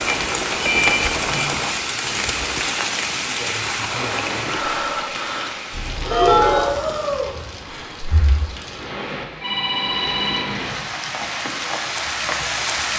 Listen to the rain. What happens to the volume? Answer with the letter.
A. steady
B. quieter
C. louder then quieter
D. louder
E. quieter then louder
E.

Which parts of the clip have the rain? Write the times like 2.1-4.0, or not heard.
0.0-12.9.